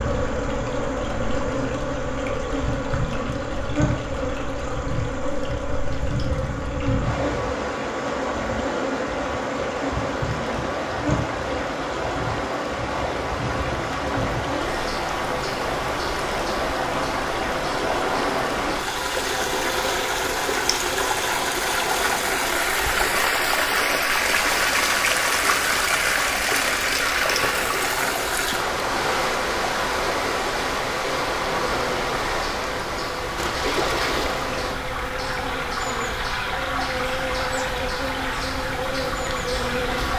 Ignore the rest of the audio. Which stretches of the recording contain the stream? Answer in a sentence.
You can hear the stream from 0.0 to 40.1 s.